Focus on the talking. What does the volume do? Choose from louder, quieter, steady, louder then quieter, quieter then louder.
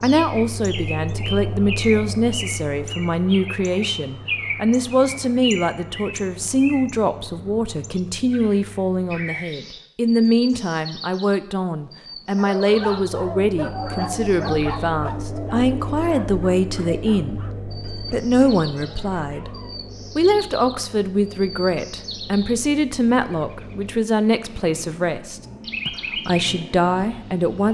steady.